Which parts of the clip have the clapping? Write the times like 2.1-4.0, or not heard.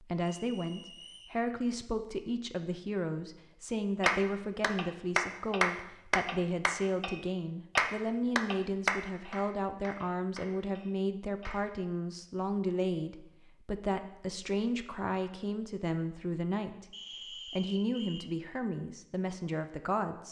4.0-11.6.